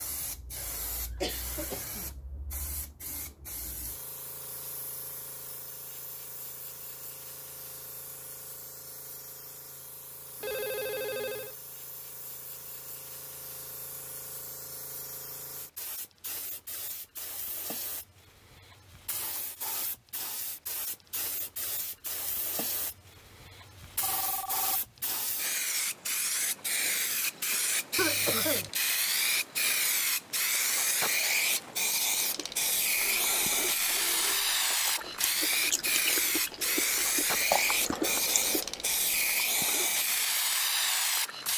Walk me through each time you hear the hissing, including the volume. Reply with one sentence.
You can hear the hissing from 0.0 to 41.5 s, getting louder.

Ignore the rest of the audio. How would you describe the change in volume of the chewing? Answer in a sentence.
The volume of the chewing goes up, then down.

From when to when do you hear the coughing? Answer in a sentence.
The coughing can be heard from 1.2 to 2.1 s and from 27.9 to 28.7 s.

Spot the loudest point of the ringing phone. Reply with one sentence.
The loudest moment of the ringing phone is at 11 seconds.